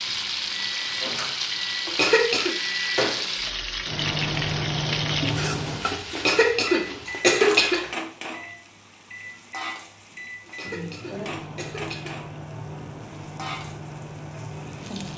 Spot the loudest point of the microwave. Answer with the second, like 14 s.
5 s.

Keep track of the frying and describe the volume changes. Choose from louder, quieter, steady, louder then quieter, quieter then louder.
quieter.